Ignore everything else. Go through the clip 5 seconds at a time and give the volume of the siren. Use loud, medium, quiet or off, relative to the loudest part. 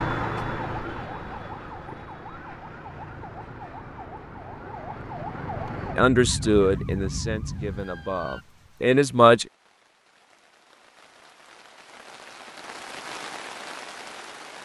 loud, loud, off.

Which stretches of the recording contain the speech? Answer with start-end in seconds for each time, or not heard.
6.0-9.4.